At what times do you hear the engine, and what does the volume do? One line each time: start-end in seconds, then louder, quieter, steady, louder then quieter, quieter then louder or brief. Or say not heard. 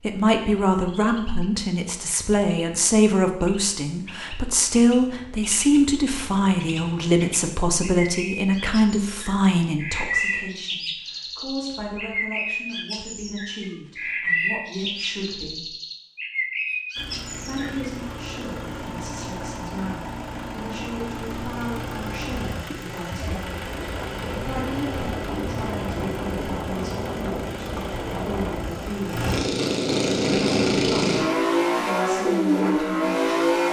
16.9-33.6 louder.